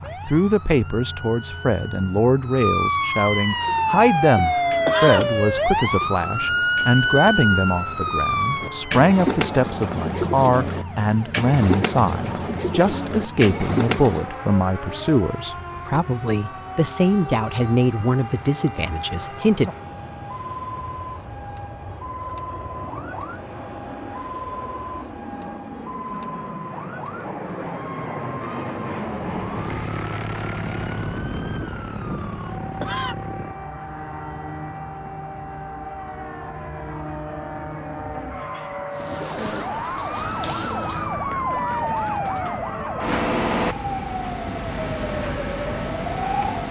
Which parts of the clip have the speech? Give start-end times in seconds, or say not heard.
0.0-19.7.